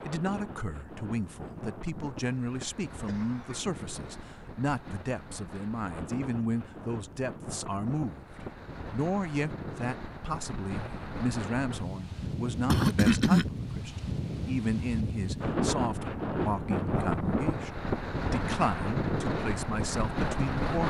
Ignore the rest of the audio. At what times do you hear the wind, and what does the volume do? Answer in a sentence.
You can hear the wind from 0.0 to 20.8 s, getting louder.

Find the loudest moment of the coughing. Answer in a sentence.
The volume of the coughing peaks at 13 seconds.